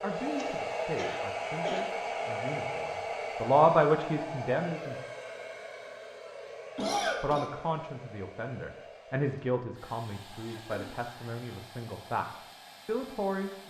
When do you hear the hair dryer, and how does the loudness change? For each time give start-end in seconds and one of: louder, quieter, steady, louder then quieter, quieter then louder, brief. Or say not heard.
0.0-13.6 quieter.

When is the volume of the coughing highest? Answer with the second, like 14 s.
7 s.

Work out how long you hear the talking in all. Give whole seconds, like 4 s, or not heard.
11 s.